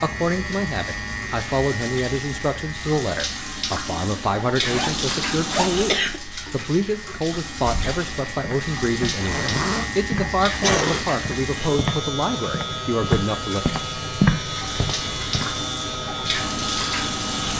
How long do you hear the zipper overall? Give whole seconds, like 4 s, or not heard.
2 s.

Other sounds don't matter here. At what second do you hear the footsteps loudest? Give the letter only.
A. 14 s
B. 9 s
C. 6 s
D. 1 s
A.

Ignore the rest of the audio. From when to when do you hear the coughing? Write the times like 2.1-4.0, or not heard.
5.7-6.2, 10.6-11.1.